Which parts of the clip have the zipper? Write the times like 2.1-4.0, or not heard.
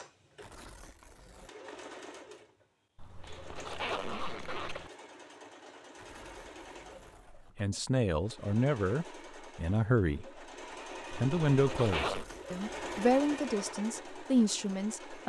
3.0-4.9, 11.1-12.2.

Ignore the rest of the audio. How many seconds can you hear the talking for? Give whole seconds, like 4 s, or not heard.
7 s.